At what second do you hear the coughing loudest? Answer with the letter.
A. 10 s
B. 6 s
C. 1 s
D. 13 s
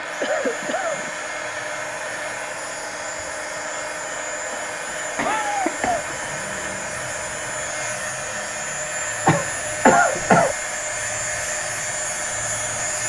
A.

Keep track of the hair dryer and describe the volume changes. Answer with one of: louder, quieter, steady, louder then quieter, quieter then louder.
steady.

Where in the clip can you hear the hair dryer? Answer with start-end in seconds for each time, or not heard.
0.0-13.0.